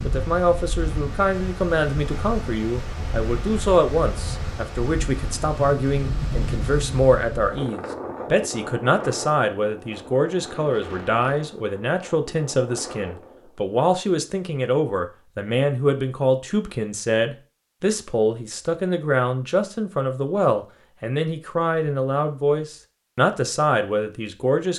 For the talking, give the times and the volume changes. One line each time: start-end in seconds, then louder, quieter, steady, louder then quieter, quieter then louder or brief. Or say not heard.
0.0-24.7 steady.